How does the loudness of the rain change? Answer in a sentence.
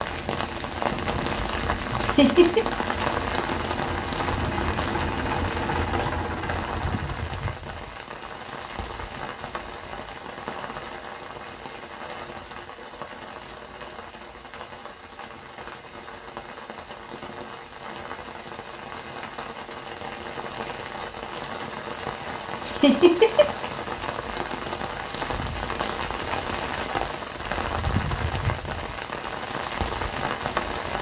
The volume of the rain goes down, then up.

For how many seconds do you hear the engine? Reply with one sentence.
You can hear the engine for 7 seconds altogether.